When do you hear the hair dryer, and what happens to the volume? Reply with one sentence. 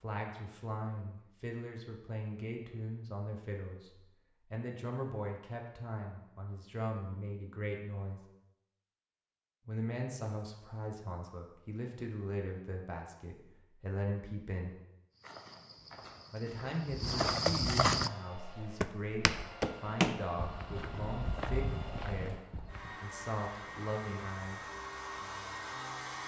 You can hear the hair dryer from 17.9 to 26.2 s, getting louder.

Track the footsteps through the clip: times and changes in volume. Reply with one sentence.
The footsteps can be heard from 15.2 to 23.0 s, getting louder then quieter.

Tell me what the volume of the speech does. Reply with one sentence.
The volume of the speech stays about the same.